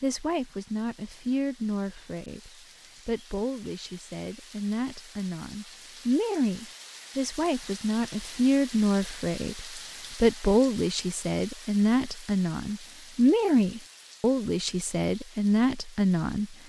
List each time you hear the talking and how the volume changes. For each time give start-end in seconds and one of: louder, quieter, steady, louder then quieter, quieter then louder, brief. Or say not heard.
0.0-16.6 louder.